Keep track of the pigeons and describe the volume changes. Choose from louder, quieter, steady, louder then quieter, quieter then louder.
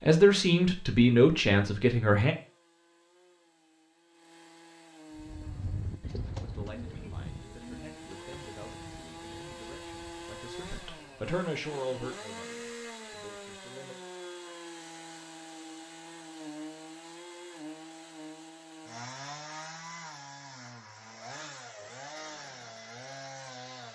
quieter.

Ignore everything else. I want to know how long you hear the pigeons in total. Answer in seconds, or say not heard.
6 s.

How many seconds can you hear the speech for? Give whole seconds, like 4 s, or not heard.
10 s.